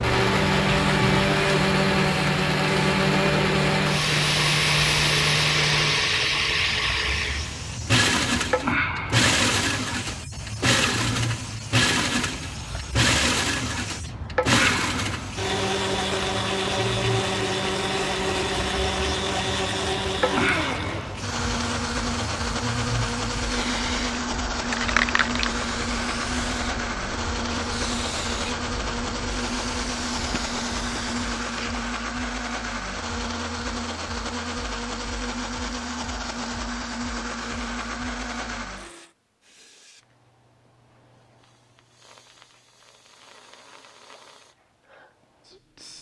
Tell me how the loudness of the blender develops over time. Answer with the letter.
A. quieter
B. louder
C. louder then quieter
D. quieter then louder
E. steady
A.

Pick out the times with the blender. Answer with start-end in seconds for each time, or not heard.
0.0-39.1.